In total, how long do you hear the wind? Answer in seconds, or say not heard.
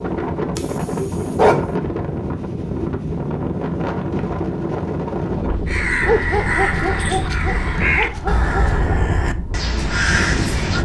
11 s.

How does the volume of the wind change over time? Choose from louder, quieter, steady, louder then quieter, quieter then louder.
quieter.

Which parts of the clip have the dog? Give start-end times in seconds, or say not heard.
0.6-1.8, 6.0-8.8.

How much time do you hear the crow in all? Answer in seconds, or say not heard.
5 s.